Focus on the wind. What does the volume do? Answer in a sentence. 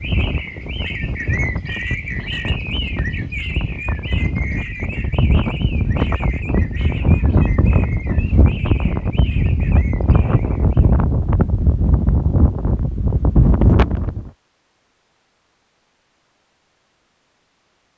The loudness of the wind goes up.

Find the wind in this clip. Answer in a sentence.
You can hear the wind from 0.0 to 14.3 s.